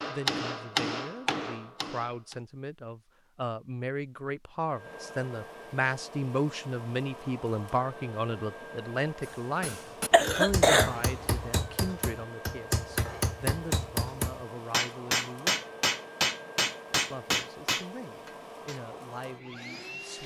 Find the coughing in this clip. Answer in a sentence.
You can hear the coughing from 10.1 to 11.4 s.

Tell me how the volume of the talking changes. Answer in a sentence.
The volume of the talking goes up, then down.